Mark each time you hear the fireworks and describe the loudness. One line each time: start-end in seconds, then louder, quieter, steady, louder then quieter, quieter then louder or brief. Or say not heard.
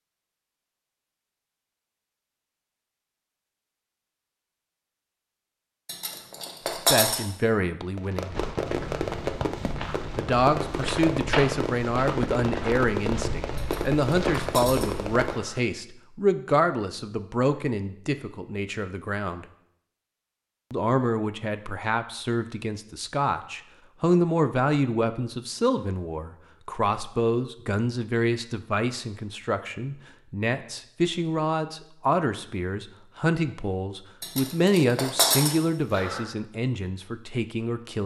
8.0-15.6 steady.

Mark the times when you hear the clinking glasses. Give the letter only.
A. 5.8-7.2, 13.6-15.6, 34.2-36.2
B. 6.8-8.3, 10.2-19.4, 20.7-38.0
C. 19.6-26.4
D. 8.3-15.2
A.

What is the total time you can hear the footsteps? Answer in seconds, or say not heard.
7 s.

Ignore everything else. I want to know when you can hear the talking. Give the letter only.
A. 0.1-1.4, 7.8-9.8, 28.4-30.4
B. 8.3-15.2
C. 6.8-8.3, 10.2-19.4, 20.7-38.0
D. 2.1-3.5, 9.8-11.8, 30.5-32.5
C.